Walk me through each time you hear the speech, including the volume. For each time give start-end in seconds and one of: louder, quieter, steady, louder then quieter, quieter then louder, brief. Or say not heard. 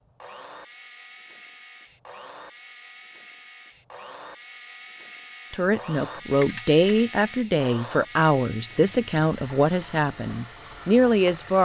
5.5-11.5 steady.